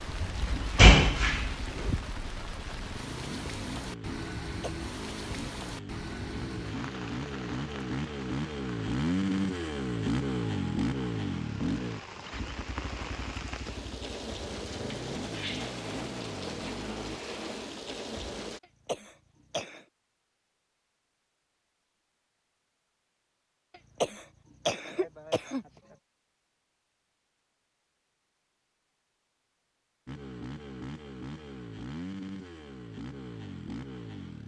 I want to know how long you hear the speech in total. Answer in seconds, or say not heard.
not heard.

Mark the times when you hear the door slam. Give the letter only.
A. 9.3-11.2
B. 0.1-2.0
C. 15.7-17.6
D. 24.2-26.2
B.